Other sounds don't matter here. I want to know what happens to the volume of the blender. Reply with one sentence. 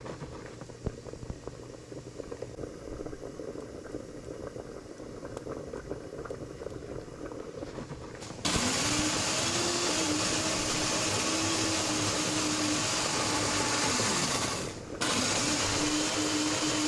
The loudness of the blender stays about the same.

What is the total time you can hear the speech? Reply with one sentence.
You can't hear the speech here.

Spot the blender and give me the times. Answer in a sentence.
You can hear the blender from 8.2 to 16.8 s.